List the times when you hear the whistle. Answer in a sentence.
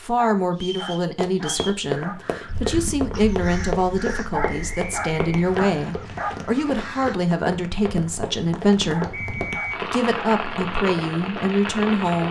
The whistle can be heard from 0.6 to 1.8 s, from 4.4 to 6.0 s and from 9.1 to 9.8 s.